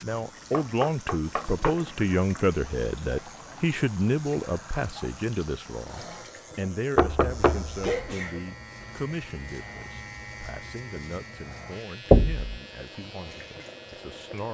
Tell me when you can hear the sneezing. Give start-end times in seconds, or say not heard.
7.8-8.9.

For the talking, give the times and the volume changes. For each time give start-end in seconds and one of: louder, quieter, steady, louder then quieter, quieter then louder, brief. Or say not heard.
0.0-14.4 quieter.